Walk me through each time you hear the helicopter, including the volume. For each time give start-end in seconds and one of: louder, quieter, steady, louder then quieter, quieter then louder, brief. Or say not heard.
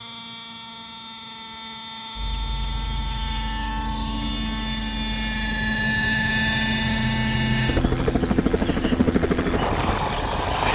0.0-10.7 louder.